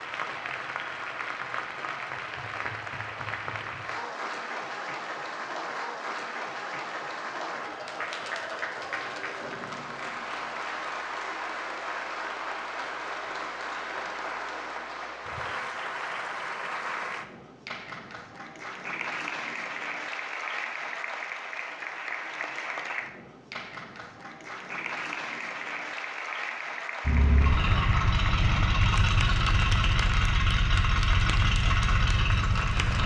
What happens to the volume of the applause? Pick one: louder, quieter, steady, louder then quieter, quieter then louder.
steady.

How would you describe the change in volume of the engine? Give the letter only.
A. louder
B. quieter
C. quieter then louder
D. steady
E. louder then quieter
D.